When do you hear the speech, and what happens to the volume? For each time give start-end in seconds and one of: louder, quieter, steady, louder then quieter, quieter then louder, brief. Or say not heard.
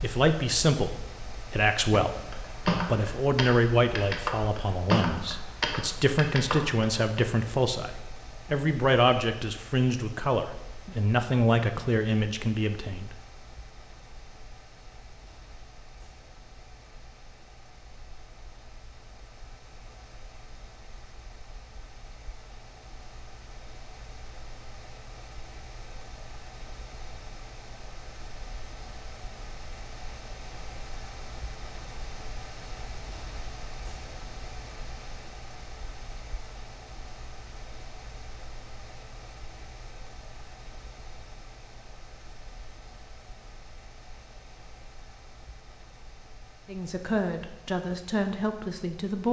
0.0-13.2 steady
46.6-49.2 brief.